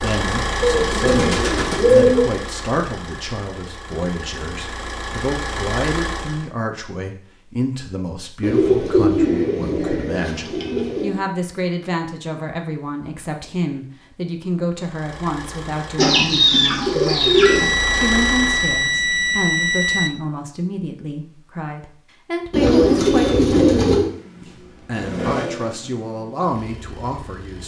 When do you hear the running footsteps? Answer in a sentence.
The running footsteps can't be heard in this clip.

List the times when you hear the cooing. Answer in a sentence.
The cooing can be heard from 0.6 to 2.3 s, from 8.4 to 11.2 s, from 15.9 to 17.8 s and from 22.5 to 24.1 s.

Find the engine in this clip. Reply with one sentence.
The engine can be heard from 0.0 to 6.5 s, from 14.8 to 19.0 s and from 23.9 to 27.6 s.